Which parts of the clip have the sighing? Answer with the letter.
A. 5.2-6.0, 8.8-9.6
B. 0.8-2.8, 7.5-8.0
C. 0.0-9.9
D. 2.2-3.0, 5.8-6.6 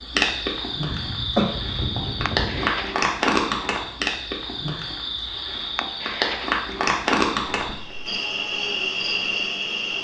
D.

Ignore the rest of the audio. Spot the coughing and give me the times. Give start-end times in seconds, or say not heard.
0.8-2.8, 7.5-8.0.